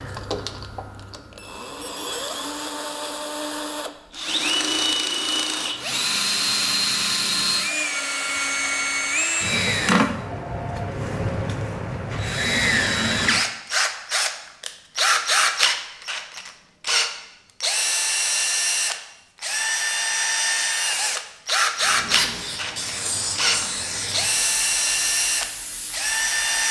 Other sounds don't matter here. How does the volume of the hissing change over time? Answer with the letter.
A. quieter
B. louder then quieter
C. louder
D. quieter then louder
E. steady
A.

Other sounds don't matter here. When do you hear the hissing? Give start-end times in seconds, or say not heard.
21.8-26.6.